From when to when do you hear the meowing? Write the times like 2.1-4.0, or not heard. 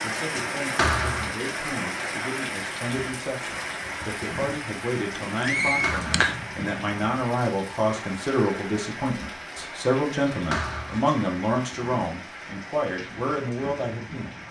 5.2-6.4.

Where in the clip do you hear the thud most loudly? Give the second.
1 s.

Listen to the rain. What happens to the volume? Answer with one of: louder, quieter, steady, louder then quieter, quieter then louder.
quieter.